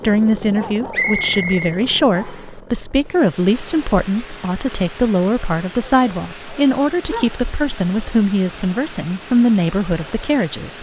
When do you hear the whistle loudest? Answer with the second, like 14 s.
1 s.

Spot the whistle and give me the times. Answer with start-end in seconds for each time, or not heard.
0.9-2.5.